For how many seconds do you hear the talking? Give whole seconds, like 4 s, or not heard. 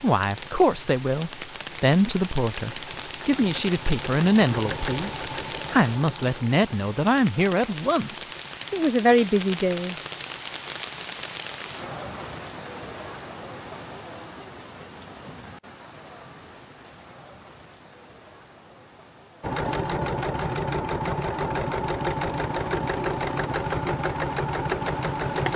10 s.